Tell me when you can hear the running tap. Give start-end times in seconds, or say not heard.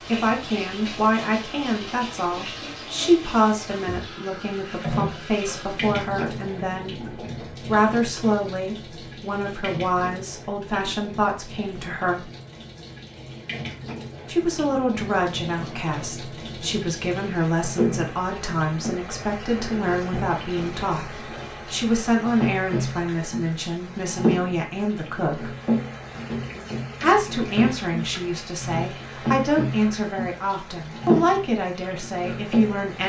0.0-33.0.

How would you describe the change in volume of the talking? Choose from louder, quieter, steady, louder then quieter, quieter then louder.
steady.